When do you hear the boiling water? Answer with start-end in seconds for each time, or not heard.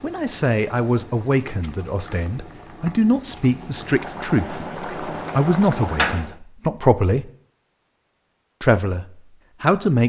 0.0-6.4.